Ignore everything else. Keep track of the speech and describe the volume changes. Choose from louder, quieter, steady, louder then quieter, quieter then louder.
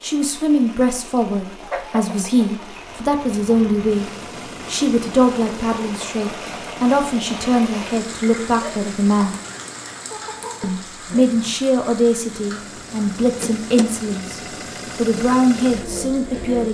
steady.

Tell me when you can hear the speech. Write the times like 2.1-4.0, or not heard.
0.0-9.3, 10.6-16.6.